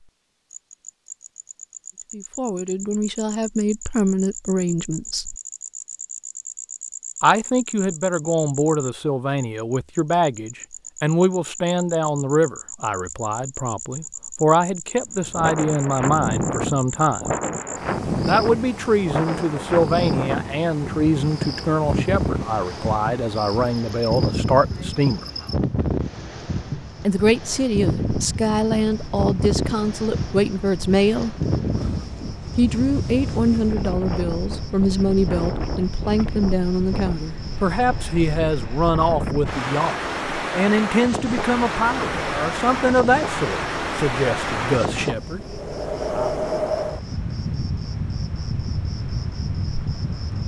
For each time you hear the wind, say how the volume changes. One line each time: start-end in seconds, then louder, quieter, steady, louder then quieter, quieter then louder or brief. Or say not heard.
15.1-50.4 steady.